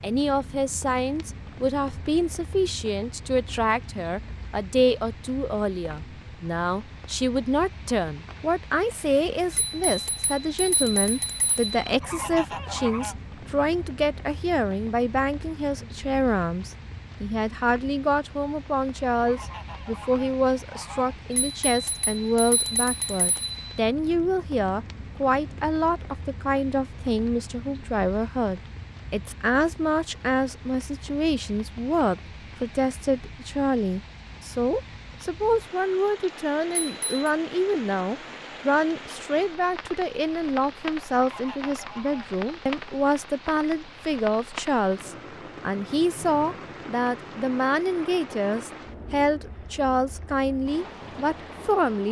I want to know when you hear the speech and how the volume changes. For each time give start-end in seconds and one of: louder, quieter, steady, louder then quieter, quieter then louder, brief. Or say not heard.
0.0-52.0 steady.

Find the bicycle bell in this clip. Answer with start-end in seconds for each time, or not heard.
9.5-11.8, 21.3-23.6, 36.8-37.2.